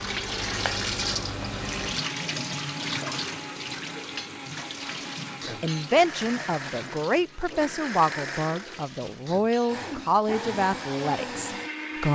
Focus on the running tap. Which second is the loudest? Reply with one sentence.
The loudest moment of the running tap is at 1 second.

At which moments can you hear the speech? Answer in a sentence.
You can hear the speech from 5.6 to 12.1 s.